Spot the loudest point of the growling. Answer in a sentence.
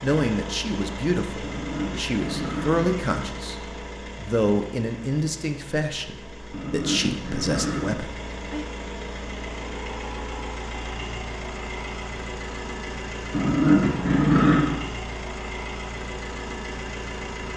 The volume of the growling peaks at 14 seconds.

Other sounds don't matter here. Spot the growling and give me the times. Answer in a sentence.
You can hear the growling from 1.4 to 3.0 s, from 6.5 to 8.0 s and from 13.3 to 14.8 s.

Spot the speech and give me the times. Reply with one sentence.
The speech can be heard from 0.0 to 3.5 s and from 4.2 to 8.7 s.